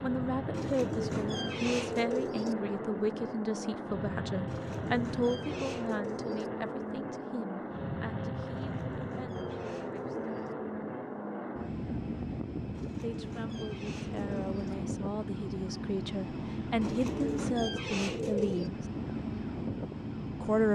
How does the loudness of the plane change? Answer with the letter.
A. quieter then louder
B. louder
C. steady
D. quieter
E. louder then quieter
C.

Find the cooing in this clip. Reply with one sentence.
You can hear the cooing from 0.5 to 2.5 s, from 4.5 to 6.5 s, from 8.5 to 10.6 s, from 12.8 to 14.8 s and from 16.8 to 18.7 s.